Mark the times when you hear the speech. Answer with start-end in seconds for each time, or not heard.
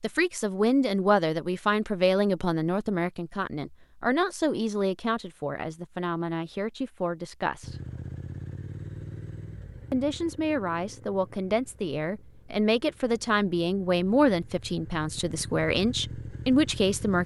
0.0-7.8, 9.9-17.2.